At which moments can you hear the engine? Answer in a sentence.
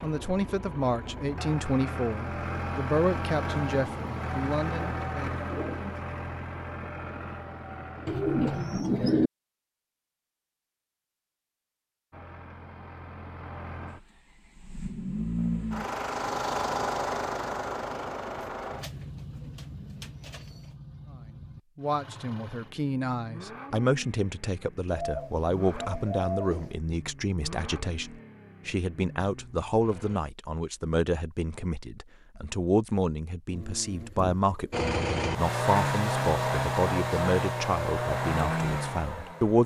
You can hear the engine from 0.0 to 8.8 s, from 12.1 to 30.2 s and from 34.7 to 39.6 s.